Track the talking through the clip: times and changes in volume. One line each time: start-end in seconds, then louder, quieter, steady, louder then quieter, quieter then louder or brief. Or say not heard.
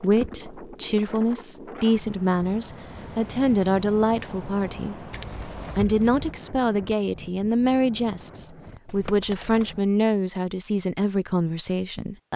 0.0-12.3 steady.